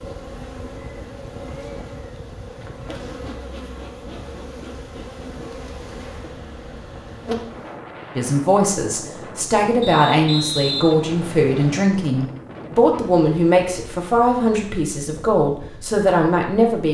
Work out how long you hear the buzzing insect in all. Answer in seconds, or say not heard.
8 s.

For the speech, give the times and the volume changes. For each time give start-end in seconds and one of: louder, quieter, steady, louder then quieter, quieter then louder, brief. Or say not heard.
8.2-16.8 steady.